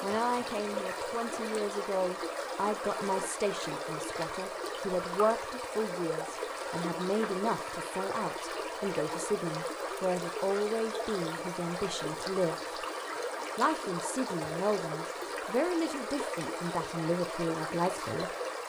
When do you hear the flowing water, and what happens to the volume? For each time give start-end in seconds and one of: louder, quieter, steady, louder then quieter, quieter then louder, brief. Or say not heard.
0.0-18.6 steady.